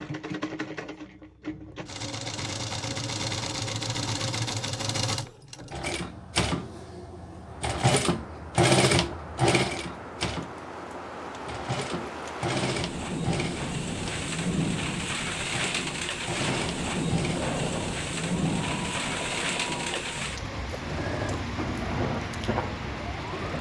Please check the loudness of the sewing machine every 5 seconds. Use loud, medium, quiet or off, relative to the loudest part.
medium, loud, medium, medium, medium.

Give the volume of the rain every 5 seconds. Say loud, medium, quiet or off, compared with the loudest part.
off, quiet, loud, loud, loud.